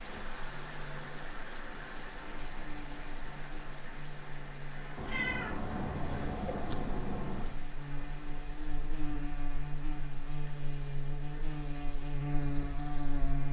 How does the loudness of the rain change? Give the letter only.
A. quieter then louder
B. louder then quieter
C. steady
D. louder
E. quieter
E.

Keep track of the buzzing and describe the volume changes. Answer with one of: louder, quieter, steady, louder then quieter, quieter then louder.
louder.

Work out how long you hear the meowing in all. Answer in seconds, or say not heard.
3 s.